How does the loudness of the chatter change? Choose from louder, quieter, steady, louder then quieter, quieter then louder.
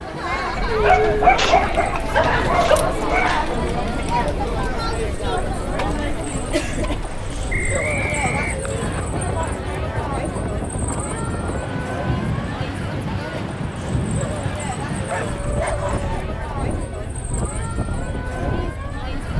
quieter.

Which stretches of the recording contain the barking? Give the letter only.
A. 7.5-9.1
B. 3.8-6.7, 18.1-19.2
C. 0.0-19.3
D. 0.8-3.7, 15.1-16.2
D.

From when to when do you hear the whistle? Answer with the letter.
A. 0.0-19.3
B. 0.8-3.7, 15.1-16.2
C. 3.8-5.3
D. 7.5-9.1
D.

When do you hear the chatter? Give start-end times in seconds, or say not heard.
0.0-19.3.